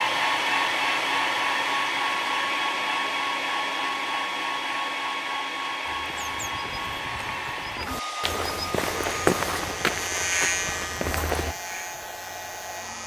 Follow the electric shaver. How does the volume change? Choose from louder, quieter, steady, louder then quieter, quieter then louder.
louder then quieter.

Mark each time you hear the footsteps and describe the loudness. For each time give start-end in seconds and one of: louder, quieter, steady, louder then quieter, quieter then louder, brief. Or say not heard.
5.8-11.6 louder then quieter.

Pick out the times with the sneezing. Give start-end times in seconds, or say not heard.
not heard.